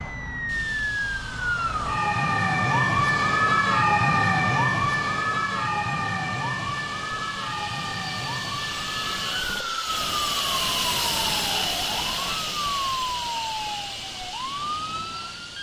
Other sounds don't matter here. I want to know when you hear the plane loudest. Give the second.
11 s.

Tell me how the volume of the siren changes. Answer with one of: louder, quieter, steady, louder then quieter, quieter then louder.
quieter.